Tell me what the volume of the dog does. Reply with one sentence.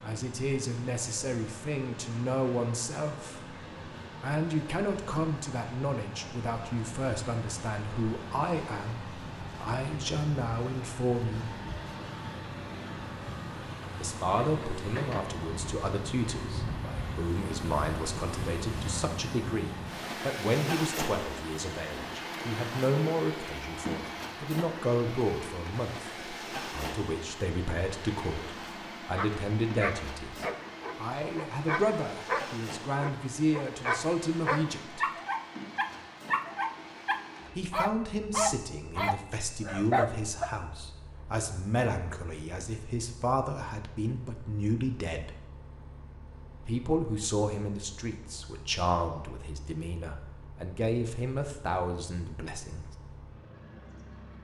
The loudness of the dog goes up.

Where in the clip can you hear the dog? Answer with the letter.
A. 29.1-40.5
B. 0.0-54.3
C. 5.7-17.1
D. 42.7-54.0
A.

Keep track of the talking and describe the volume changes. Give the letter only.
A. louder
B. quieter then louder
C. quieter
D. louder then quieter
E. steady
E.